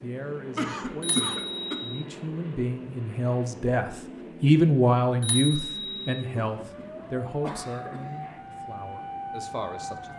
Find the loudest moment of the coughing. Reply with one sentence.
The loudest moment of the coughing is at 1 second.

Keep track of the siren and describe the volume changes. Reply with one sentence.
The volume of the siren goes up.